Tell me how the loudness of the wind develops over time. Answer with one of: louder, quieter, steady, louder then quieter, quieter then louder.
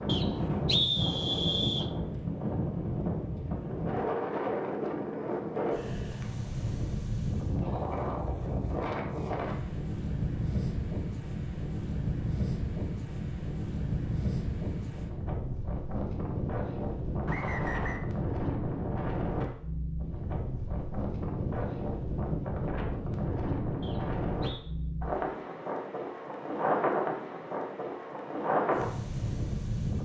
steady.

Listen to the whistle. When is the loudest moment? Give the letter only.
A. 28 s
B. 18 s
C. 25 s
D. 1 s
D.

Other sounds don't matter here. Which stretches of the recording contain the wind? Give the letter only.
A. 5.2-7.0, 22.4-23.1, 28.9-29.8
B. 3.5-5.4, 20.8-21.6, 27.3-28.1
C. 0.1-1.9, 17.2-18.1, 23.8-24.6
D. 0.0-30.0
D.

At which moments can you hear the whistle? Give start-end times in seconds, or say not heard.
0.1-1.9, 17.2-18.1, 23.8-24.6.